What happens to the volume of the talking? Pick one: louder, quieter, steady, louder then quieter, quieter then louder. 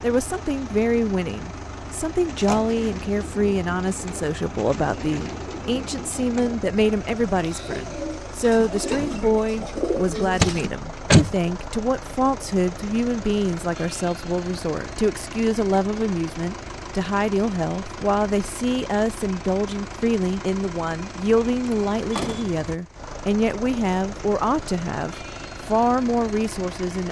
steady.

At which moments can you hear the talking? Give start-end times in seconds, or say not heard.
0.0-27.0.